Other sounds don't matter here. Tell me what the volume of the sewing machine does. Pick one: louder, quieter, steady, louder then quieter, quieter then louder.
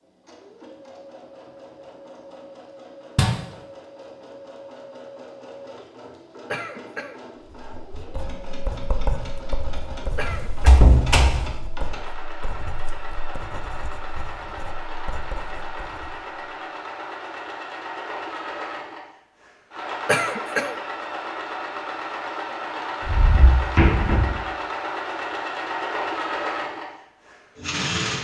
louder.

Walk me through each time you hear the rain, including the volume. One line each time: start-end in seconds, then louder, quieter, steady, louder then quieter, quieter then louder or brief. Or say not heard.
not heard.